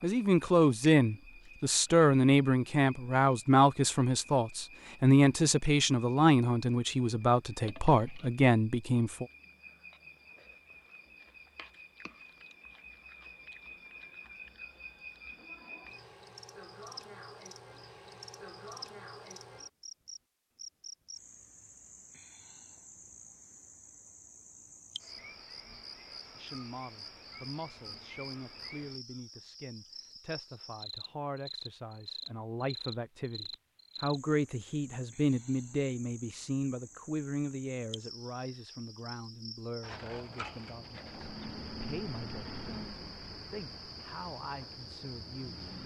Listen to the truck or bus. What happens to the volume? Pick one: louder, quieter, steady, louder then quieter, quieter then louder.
quieter.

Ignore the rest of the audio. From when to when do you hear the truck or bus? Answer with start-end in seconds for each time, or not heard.
40.9-45.8.